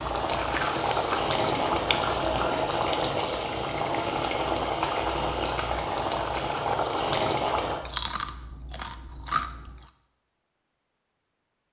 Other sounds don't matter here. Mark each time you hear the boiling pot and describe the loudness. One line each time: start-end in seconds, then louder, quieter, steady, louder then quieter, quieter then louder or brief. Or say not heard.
0.0-7.8 steady.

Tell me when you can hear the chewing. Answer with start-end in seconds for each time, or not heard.
0.3-2.7, 7.8-9.8.